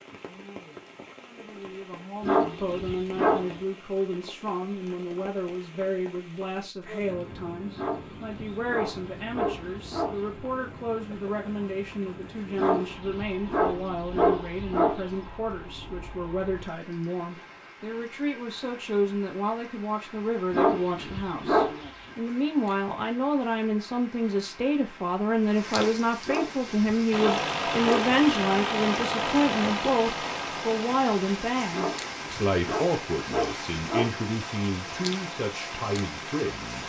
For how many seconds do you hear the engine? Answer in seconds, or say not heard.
10 s.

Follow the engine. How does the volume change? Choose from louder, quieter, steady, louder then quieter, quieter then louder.
quieter.